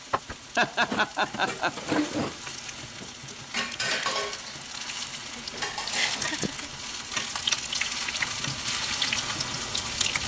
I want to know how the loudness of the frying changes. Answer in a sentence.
The volume of the frying goes up.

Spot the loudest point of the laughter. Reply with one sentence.
The volume of the laughter peaks at 1 second.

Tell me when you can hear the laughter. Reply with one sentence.
You can hear the laughter from 0.6 to 1.9 s and from 5.2 to 6.7 s.